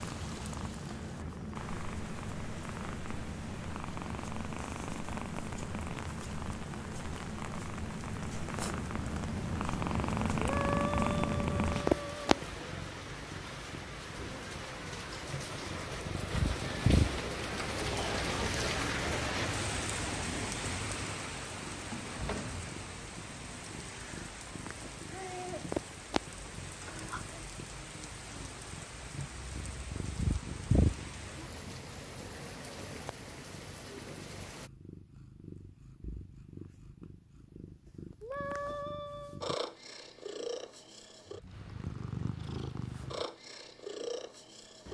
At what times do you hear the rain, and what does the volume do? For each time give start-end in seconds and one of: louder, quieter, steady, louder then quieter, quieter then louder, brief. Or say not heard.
0.0-34.7 louder then quieter.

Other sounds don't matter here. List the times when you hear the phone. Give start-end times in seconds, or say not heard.
not heard.